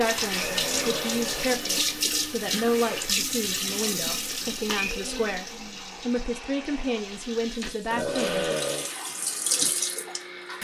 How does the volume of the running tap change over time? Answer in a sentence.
The volume of the running tap goes down, then up.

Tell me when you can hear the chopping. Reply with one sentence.
You can't hear the chopping here.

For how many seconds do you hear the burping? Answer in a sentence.
You can hear the burping for 2 seconds altogether.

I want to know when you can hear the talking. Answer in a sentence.
The talking can be heard from 0.0 to 8.4 s.